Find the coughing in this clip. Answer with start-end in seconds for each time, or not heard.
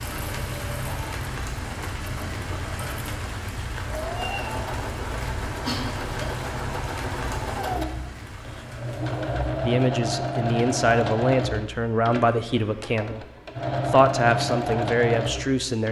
5.5-6.3.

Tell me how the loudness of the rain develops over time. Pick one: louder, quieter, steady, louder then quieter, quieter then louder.
quieter.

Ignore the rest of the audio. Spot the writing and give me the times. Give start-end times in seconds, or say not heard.
not heard.